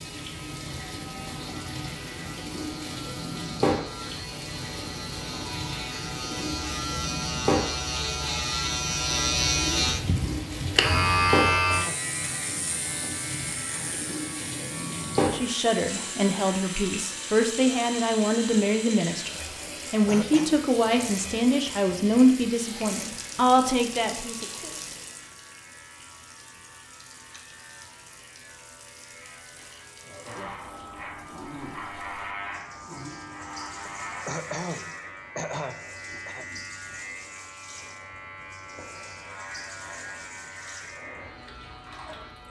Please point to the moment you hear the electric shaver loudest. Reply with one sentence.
The volume of the electric shaver peaks at 11 seconds.